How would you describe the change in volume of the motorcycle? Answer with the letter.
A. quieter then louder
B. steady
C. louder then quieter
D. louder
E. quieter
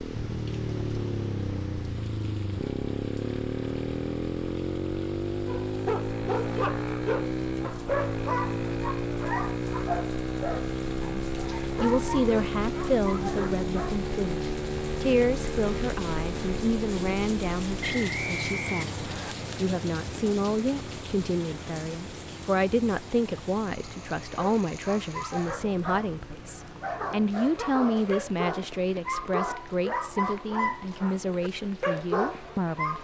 E.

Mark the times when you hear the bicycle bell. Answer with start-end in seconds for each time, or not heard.
not heard.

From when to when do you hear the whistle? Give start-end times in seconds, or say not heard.
17.8-19.4.